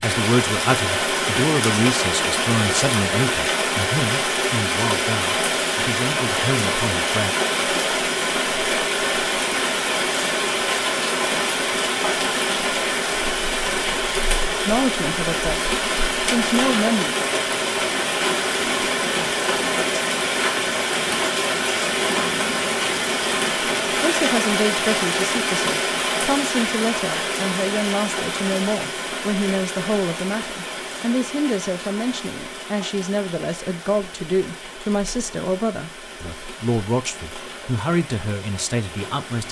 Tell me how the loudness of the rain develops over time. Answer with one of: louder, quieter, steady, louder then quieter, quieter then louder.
quieter.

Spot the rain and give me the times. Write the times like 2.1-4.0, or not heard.
0.0-39.4.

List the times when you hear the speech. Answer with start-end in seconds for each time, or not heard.
0.0-7.3, 14.7-17.1, 24.0-39.4.